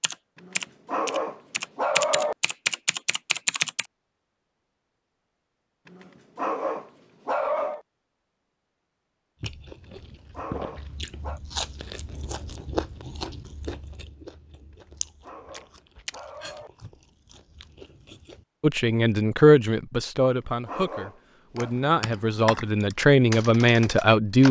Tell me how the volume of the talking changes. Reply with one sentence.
The volume of the talking goes down, then up.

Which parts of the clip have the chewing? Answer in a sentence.
You can hear the chewing from 9.4 to 18.4 s.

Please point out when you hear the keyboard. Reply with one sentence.
The keyboard can be heard from 0.0 to 3.9 s and from 21.6 to 24.4 s.